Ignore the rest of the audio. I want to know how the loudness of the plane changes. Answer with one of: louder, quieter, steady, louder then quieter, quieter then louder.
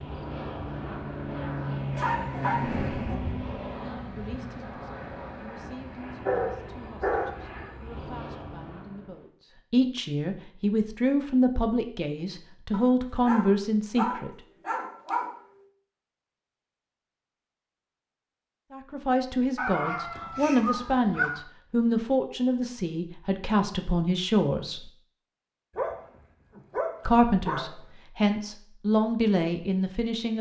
quieter.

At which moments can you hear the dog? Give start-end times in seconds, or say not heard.
1.9-3.1, 6.2-7.4, 12.7-15.3, 19.6-21.4, 25.8-27.8.